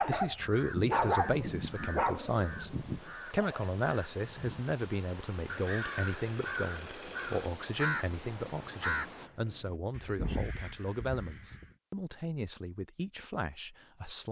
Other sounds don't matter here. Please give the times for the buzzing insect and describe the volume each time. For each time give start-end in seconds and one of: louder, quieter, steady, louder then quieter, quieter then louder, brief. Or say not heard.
not heard.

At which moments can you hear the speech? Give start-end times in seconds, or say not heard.
0.1-14.2.